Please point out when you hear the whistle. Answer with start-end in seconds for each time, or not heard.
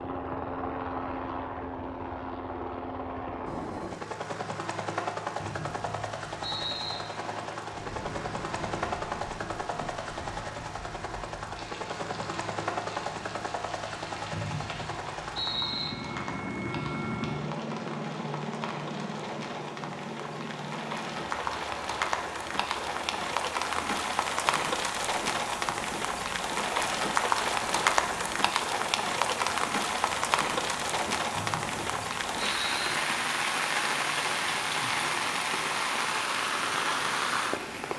5.3-7.0, 14.3-15.9, 31.4-33.0.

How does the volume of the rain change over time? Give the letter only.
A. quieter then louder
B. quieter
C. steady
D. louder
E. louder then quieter
D.